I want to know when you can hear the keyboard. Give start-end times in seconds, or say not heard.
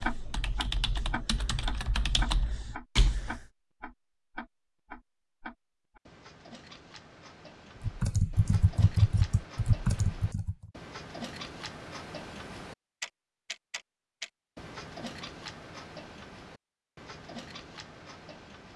0.0-3.5, 7.8-10.7.